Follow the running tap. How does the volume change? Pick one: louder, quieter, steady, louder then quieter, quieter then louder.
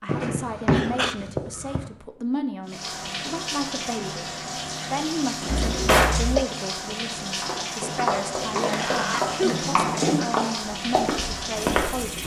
steady.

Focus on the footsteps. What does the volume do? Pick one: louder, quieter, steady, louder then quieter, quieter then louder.
steady.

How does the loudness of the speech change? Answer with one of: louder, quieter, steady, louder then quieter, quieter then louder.
steady.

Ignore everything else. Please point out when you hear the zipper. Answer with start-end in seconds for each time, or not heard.
not heard.